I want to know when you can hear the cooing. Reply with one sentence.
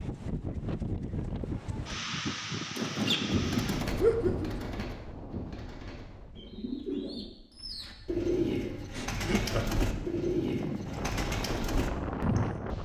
The cooing can be heard from 2.8 to 12.6 s.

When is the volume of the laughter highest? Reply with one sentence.
The volume of the laughter peaks at 4 seconds.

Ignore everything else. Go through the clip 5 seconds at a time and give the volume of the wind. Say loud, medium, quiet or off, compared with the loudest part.
loud, quiet, loud.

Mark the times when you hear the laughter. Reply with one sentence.
The laughter can be heard from 4.0 to 4.8 s and from 8.9 to 9.8 s.